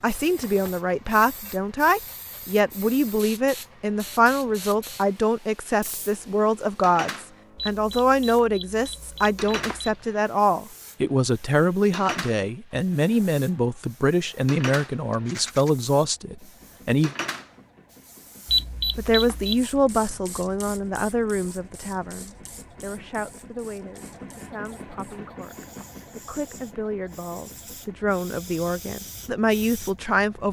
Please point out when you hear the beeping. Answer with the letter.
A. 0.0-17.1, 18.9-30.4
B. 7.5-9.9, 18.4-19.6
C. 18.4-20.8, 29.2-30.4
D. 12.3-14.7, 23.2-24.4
B.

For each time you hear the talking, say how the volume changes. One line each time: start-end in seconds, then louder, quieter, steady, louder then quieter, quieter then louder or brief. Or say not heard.
0.0-17.1 steady
18.9-30.4 quieter then louder.